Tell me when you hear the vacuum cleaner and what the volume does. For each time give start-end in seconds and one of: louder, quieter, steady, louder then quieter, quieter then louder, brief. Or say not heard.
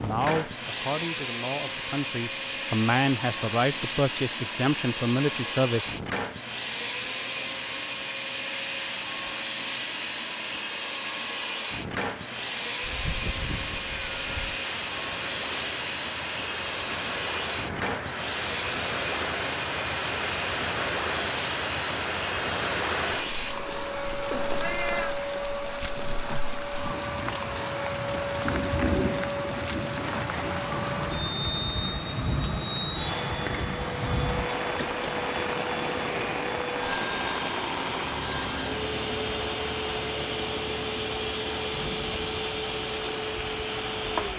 0.0-44.3 steady.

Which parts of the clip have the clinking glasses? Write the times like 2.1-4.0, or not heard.
not heard.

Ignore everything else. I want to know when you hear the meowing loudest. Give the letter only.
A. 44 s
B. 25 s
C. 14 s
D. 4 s
B.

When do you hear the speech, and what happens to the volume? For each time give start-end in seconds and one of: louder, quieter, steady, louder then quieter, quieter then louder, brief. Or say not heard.
0.0-6.0 louder.